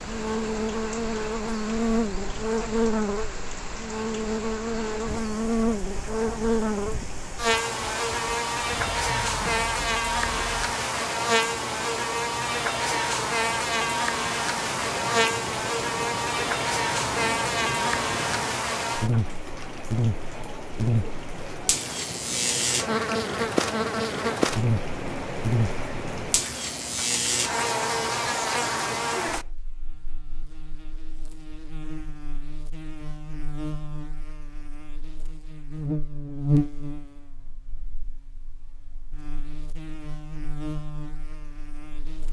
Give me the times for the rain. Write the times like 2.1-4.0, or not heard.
0.0-29.5.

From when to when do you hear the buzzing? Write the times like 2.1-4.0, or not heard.
0.0-42.2.